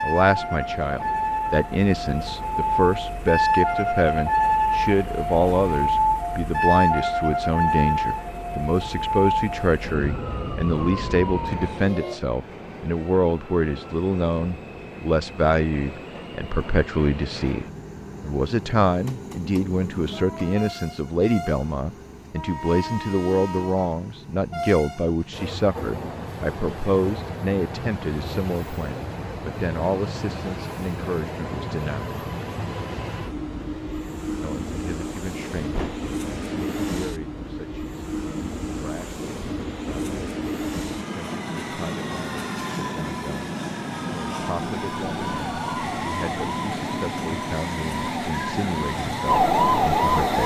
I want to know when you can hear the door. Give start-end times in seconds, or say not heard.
35.2-36.1.